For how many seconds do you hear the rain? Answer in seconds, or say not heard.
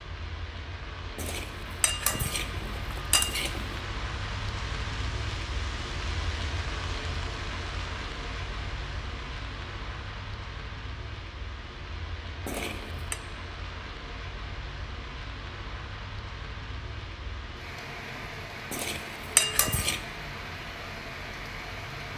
22 s.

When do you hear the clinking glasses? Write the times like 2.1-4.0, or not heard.
1.1-3.8, 12.4-13.2, 18.7-20.0.